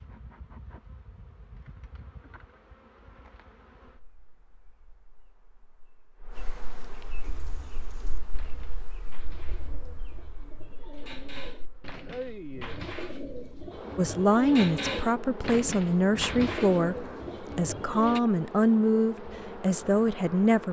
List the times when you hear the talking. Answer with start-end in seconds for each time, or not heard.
13.9-20.6.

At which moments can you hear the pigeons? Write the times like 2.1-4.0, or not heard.
7.2-18.2.